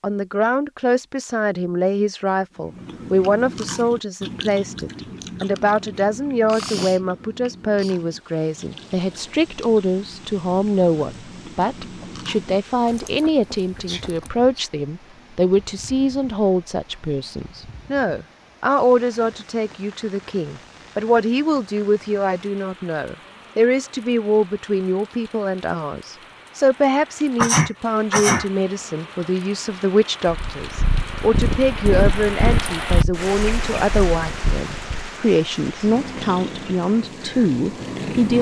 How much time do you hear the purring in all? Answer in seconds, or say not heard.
8 s.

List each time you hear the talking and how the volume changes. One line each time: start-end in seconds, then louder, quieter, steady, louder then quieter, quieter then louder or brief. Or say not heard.
0.0-38.3 steady.